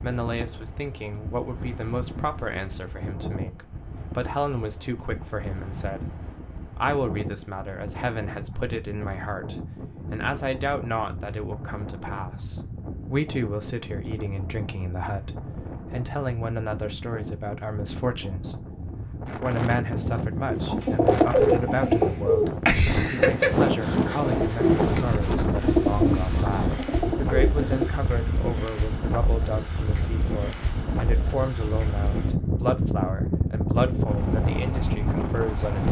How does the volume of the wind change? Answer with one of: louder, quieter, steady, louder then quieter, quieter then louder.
louder.